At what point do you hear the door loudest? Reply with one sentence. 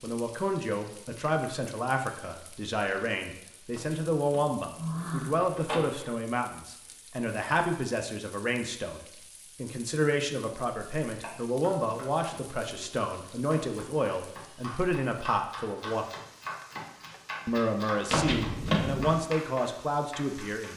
The volume of the door peaks at 19 seconds.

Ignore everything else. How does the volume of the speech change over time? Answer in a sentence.
The loudness of the speech stays about the same.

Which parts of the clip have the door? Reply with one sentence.
You can hear the door from 3.7 to 6.1 s and from 18.1 to 19.2 s.